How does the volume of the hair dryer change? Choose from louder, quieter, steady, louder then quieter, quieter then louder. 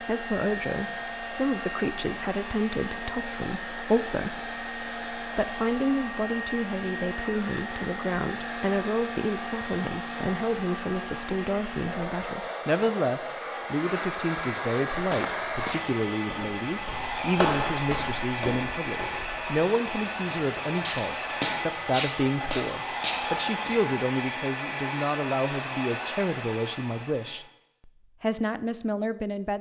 steady.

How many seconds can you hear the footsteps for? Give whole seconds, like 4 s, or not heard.
9 s.